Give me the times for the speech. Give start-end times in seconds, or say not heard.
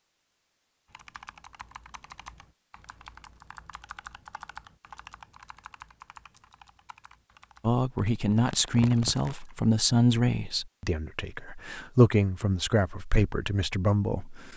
7.6-14.5.